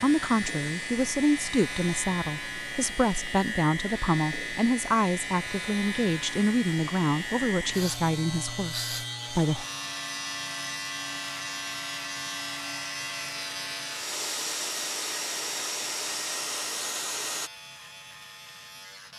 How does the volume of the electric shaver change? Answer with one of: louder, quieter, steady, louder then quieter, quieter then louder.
quieter.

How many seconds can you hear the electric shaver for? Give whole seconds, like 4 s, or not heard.
19 s.